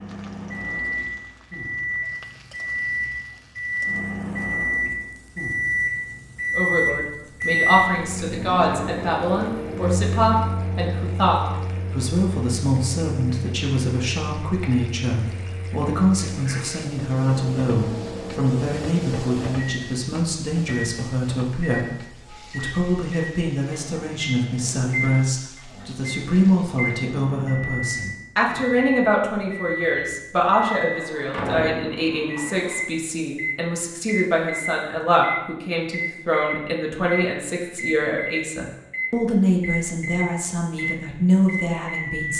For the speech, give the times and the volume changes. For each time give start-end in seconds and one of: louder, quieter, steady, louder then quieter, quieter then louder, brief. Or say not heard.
6.5-42.3 steady.